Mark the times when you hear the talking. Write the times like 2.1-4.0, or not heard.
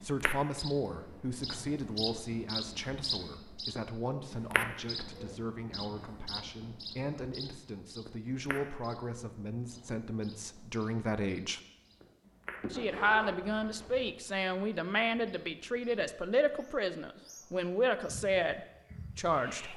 0.0-11.6, 12.7-19.7.